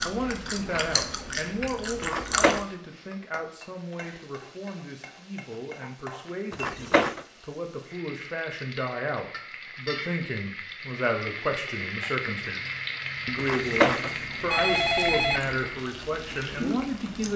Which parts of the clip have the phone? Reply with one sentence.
The phone can be heard from 2.0 to 2.6 s, from 6.5 to 7.2 s and from 13.3 to 15.4 s.